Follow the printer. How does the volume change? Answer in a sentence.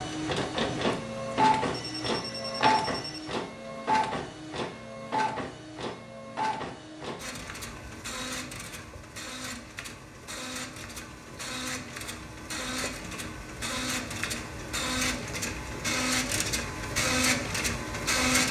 The loudness of the printer goes down, then up.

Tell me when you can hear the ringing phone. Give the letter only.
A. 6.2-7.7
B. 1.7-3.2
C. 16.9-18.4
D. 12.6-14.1
B.